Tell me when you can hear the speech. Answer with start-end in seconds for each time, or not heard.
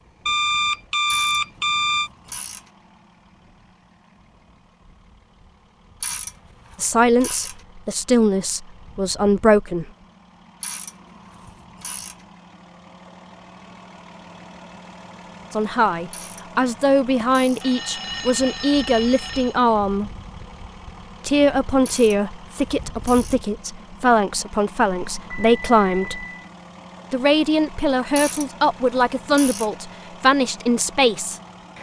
6.8-9.9, 15.5-20.1, 21.2-26.2, 27.1-31.4.